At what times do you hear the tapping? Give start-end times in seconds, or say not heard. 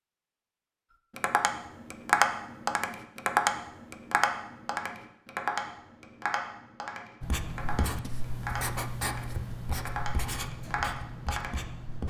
1.1-11.6.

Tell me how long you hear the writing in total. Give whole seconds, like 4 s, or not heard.
5 s.